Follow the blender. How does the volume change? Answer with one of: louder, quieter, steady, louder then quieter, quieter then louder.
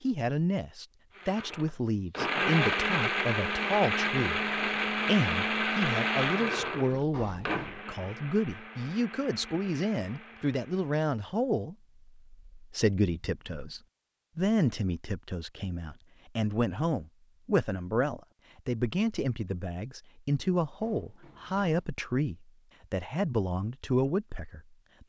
quieter.